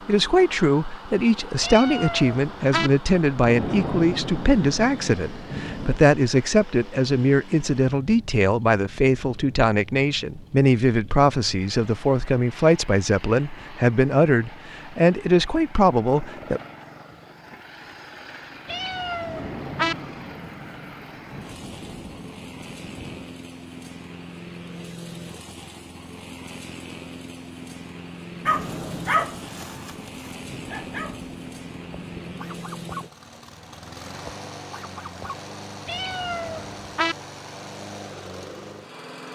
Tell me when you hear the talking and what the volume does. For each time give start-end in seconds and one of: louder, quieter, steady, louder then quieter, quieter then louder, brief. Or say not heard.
0.1-16.6 steady.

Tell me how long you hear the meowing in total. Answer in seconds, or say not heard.
4 s.